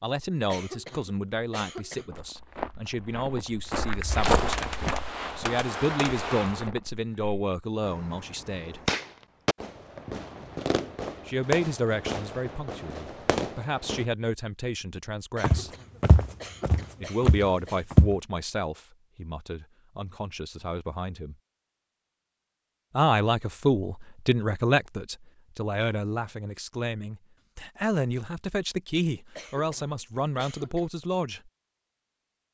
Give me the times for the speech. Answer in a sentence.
You can hear the speech from 0.0 to 8.8 s, from 11.2 to 15.7 s, from 17.0 to 21.4 s and from 22.9 to 31.5 s.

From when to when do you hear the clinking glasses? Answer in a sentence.
The clinking glasses can't be heard in this clip.